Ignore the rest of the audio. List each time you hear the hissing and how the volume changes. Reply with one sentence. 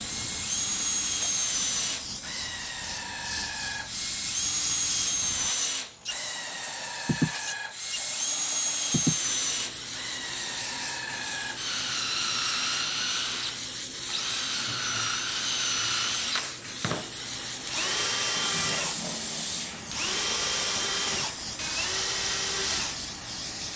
The hissing can be heard from 0.0 to 23.7 s, at a steady volume.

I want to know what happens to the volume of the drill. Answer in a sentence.
The volume of the drill stays about the same.